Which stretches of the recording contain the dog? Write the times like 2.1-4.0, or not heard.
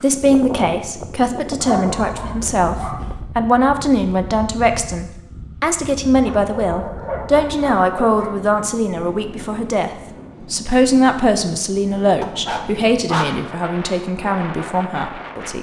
1.6-3.1, 6.2-8.3, 12.2-13.4.